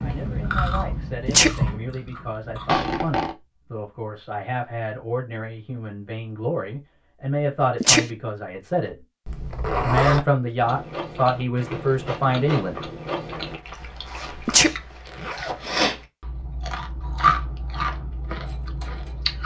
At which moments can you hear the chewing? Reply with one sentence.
The chewing can be heard from 0.0 to 2.9 s and from 10.6 to 19.4 s.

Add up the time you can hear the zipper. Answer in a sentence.
The zipper can be heard for 4 seconds in total.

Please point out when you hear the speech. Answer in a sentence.
You can hear the speech from 0.0 to 9.0 s and from 9.8 to 12.8 s.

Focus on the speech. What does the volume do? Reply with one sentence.
The loudness of the speech goes up.